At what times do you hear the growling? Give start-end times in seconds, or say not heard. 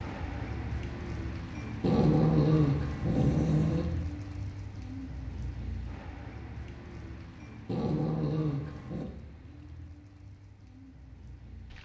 1.8-3.9, 7.7-9.1.